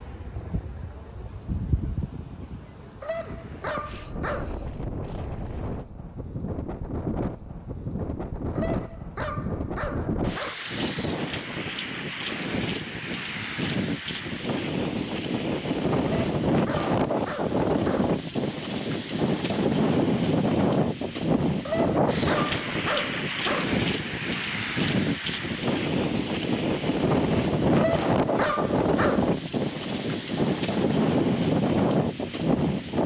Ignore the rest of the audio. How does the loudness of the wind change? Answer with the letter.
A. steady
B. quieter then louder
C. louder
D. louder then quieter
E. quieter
C.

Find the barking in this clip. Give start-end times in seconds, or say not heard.
3.0-4.5, 8.6-10.6, 16.0-18.1, 21.6-23.6, 27.8-29.3.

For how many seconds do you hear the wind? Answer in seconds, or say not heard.
33 s.